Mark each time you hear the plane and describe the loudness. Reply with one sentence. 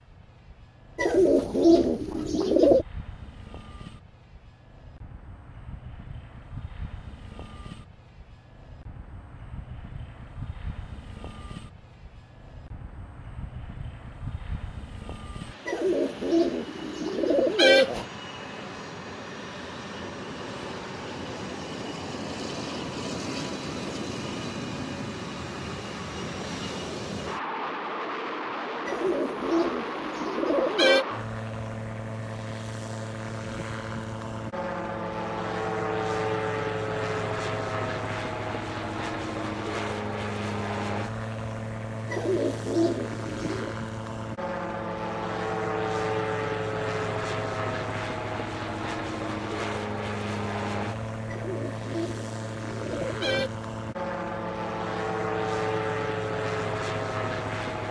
You can hear the plane from 0.0 to 57.8 s, getting louder.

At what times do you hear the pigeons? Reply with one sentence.
You can hear the pigeons from 0.9 to 2.9 s, from 15.7 to 18.1 s, from 28.9 to 31.1 s, from 42.0 to 43.8 s and from 51.2 to 53.5 s.